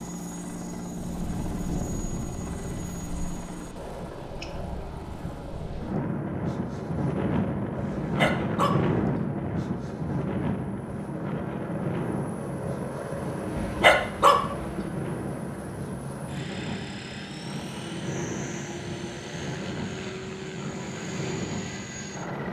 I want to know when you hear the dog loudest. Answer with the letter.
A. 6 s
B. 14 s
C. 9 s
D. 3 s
B.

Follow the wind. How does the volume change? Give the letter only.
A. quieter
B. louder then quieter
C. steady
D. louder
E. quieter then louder
B.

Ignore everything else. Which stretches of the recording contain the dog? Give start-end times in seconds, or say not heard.
7.9-9.0, 13.6-14.8.